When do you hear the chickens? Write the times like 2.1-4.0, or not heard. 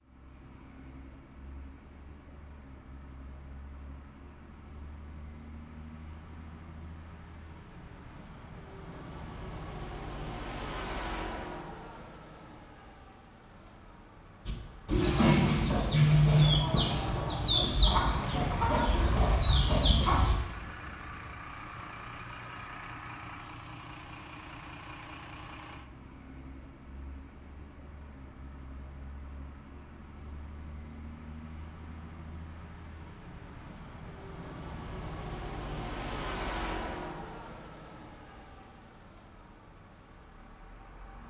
14.4-20.4.